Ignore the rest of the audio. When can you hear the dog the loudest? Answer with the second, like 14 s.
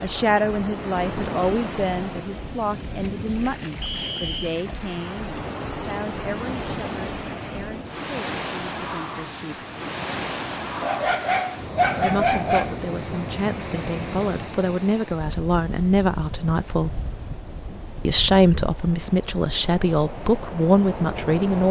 12 s.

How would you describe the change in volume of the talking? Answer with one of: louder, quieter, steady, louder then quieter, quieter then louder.
quieter then louder.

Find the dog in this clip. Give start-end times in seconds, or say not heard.
10.8-12.8.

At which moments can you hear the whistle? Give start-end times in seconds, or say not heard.
3.8-4.5.